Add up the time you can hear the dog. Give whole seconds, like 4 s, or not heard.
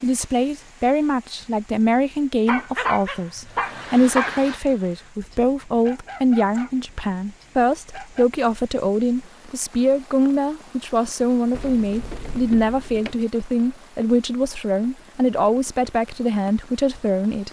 5 s.